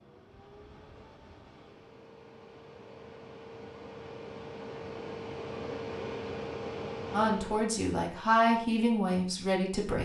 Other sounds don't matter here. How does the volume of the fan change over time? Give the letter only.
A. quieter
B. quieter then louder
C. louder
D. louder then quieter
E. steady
C.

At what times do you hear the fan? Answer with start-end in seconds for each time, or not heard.
0.0-7.8.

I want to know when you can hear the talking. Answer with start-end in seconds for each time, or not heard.
7.1-10.0.